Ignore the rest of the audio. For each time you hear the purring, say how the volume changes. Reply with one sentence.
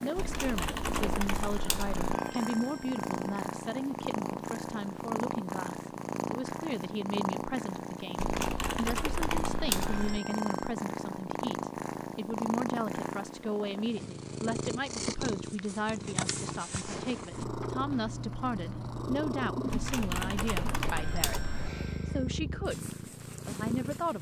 You can hear the purring from 0.0 to 24.1 s, at a steady volume.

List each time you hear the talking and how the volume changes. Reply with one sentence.
The talking can be heard from 0.0 to 24.1 s, at a steady volume.